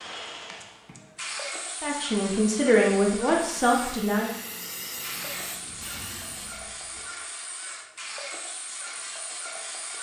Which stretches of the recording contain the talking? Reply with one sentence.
You can hear the talking from 1.8 to 4.3 s.